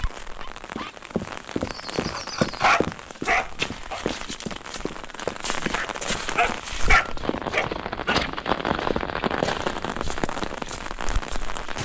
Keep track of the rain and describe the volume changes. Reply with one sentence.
The volume of the rain goes up.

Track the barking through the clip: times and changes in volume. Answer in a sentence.
You can hear the barking from 0.0 to 4.0 s, getting quieter then louder; and briefly from 5.7 to 8.2 s.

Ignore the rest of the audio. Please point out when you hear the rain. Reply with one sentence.
You can hear the rain from 0.0 to 11.7 s.